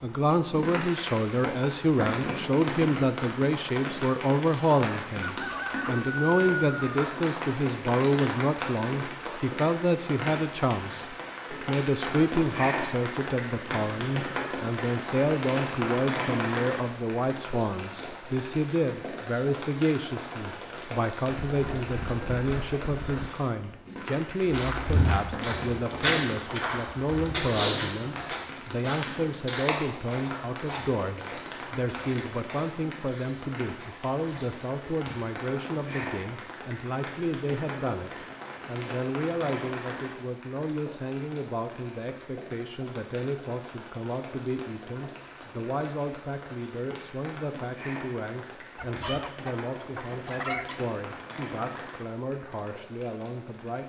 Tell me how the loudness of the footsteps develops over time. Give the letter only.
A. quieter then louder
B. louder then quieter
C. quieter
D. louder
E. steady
C.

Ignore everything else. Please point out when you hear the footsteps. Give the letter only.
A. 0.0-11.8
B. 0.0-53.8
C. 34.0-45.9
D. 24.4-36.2
D.